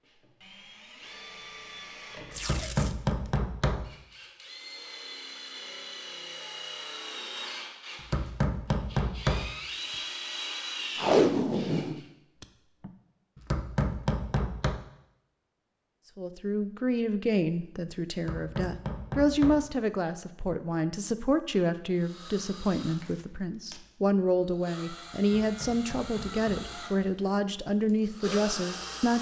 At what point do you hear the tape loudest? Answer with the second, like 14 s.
11 s.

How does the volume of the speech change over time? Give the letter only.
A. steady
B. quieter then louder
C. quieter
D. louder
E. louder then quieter
A.